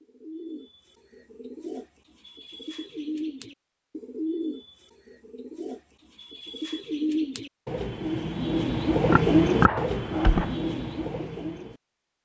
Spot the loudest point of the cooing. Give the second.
9 s.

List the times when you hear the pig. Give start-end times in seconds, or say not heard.
9.1-10.6.